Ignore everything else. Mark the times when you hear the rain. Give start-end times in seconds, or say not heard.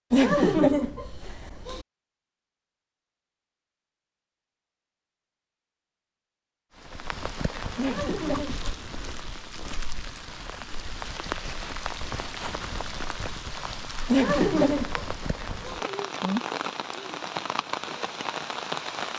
6.8-19.1.